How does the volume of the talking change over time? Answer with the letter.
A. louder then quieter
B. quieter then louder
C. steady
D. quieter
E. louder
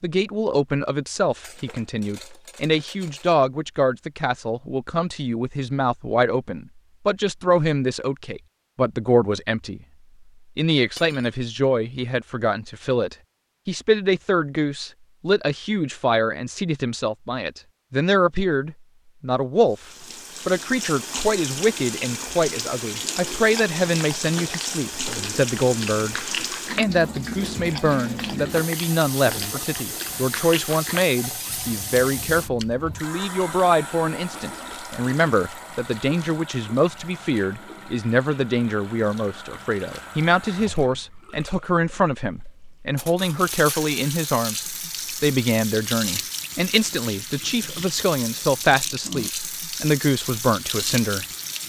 C.